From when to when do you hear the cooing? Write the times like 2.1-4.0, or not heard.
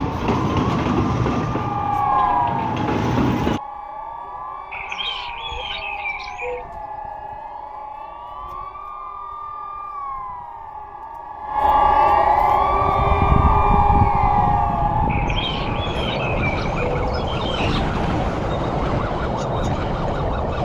4.7-6.7, 15.1-17.9.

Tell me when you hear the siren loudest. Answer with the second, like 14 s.
12 s.